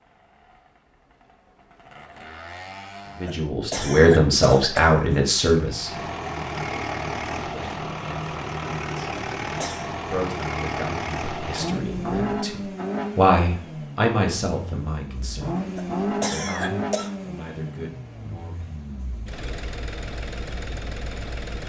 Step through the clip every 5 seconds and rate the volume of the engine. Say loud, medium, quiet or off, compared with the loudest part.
quiet, loud, loud, loud, medium.